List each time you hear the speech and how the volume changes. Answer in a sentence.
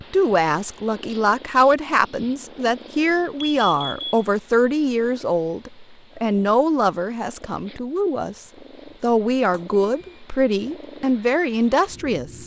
The speech can be heard from 0.1 to 12.4 s, at a steady volume.